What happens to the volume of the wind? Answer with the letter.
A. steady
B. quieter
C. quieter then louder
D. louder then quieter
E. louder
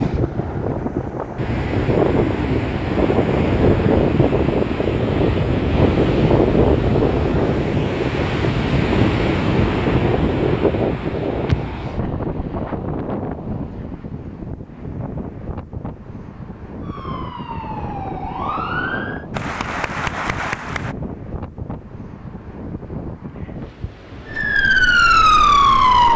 B.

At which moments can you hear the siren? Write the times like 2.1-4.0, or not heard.
16.9-19.2, 24.2-26.1.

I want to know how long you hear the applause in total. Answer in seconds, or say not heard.
2 s.